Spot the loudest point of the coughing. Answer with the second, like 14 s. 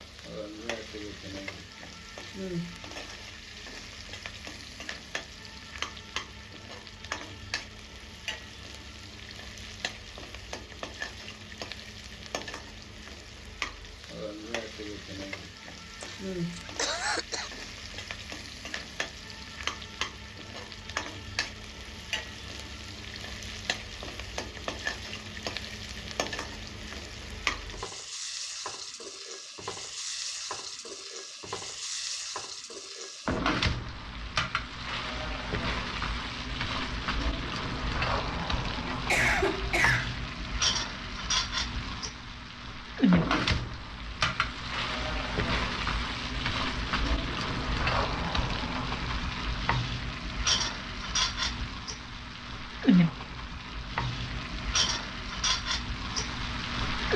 39 s.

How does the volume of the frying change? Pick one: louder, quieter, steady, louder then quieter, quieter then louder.
louder.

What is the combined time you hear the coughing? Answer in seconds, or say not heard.
3 s.